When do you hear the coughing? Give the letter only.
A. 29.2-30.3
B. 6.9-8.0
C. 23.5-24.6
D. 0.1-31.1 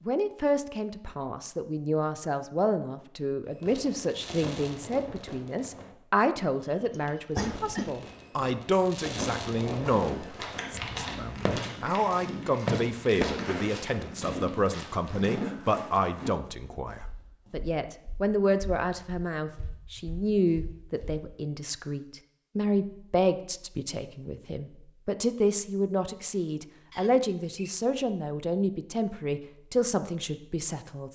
B.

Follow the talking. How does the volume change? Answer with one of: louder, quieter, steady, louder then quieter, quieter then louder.
steady.